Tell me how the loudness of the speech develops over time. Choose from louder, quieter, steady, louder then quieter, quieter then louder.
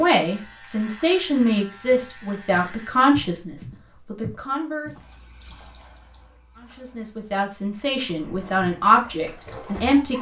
quieter then louder.